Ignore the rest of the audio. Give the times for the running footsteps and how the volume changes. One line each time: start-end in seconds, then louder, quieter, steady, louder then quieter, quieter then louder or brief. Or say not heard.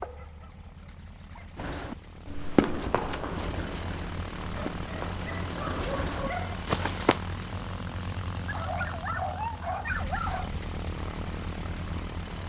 1.6-7.2 quieter then louder.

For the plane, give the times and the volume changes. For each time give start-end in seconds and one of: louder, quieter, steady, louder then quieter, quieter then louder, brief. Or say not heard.
0.0-12.4 louder.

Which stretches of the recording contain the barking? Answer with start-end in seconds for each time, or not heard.
0.0-0.5, 4.5-6.5, 8.4-10.5.